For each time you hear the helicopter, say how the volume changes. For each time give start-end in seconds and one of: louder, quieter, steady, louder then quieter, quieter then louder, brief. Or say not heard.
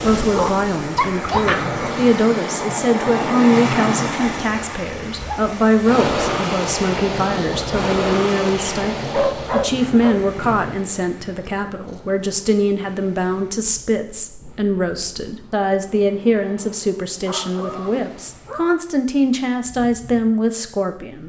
not heard.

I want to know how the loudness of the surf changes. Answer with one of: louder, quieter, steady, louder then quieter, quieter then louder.
quieter.